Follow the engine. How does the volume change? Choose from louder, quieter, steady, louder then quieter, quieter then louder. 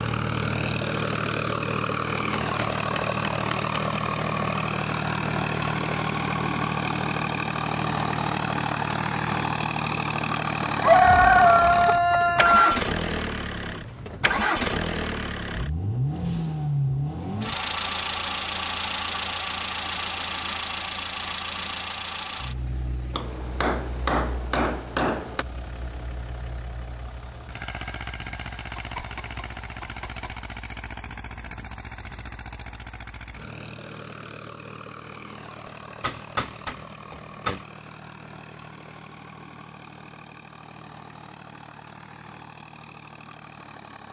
quieter.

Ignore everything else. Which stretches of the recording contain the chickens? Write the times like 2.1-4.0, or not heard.
10.8-12.8, 28.8-30.4.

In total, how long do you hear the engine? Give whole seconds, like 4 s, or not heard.
44 s.